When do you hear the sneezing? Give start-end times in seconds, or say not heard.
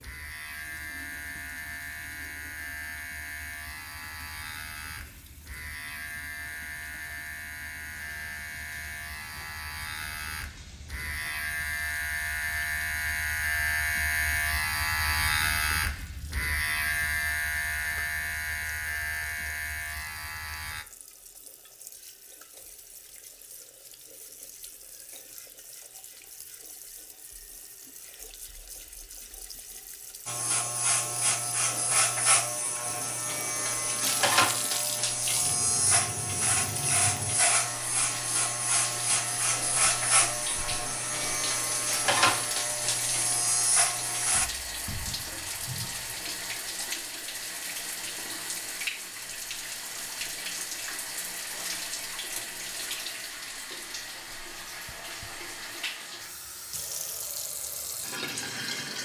not heard.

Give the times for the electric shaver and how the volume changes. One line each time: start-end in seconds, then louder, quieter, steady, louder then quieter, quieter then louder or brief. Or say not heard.
0.0-20.9 louder
30.2-44.5 steady.